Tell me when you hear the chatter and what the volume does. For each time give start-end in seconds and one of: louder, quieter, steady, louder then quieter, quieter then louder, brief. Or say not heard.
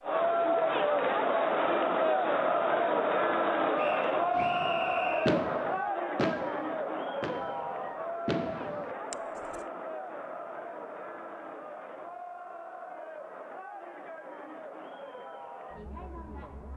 0.0-16.7 quieter.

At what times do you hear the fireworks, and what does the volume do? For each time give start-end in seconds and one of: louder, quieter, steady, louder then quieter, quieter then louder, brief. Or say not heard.
4.3-9.6 quieter then louder.